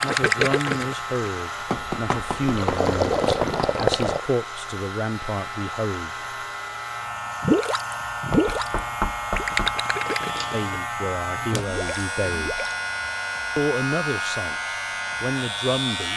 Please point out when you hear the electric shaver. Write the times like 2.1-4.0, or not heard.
0.0-16.1.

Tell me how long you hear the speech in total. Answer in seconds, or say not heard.
11 s.